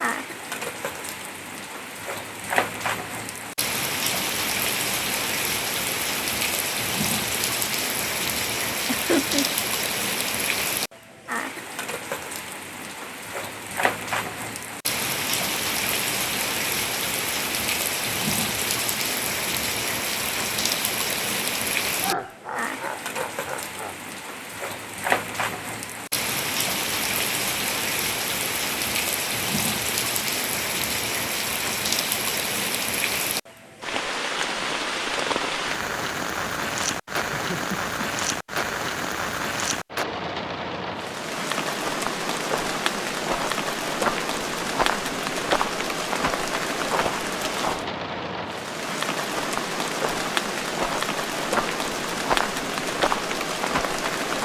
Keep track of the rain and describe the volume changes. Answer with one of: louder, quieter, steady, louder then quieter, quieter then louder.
steady.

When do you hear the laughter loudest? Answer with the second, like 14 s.
9 s.